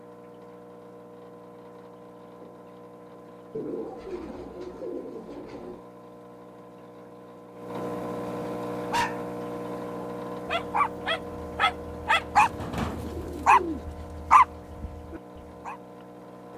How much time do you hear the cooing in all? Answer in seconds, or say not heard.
4 s.